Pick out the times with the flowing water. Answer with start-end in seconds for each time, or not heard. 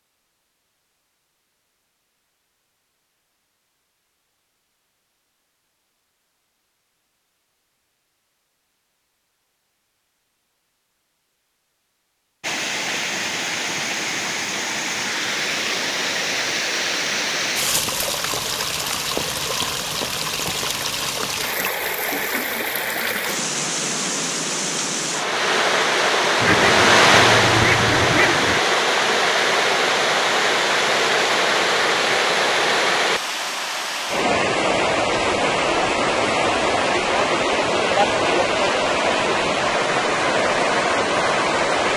12.4-41.9.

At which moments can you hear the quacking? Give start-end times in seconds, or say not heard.
26.4-28.6.